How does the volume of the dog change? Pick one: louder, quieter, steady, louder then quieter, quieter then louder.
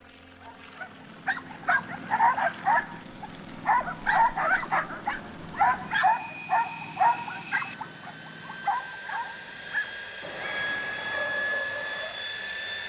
quieter.